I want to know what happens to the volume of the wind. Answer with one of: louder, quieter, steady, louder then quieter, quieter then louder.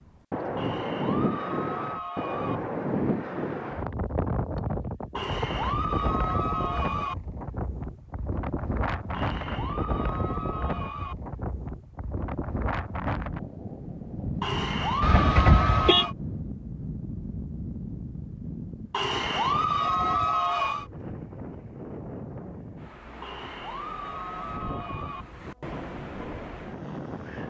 quieter.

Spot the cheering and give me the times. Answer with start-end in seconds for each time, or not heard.
0.6-2.6, 5.2-7.2, 9.1-11.2, 14.4-16.1, 18.9-20.9, 23.2-25.2.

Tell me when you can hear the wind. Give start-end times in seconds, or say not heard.
0.1-27.4.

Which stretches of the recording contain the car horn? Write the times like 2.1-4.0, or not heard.
15.0-16.1.